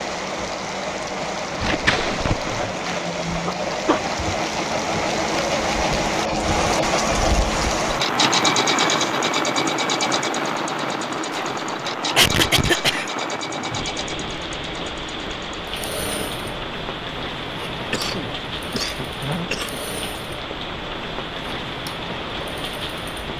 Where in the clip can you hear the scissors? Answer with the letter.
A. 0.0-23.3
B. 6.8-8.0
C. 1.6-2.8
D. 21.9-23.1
C.